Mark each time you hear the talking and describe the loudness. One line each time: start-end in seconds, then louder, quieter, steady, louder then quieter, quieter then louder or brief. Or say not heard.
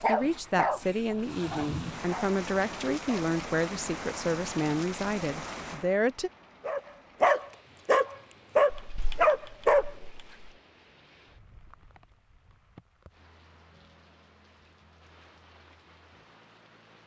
0.1-6.3 steady.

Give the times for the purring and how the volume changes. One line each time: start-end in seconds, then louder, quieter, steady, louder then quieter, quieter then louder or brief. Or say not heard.
not heard.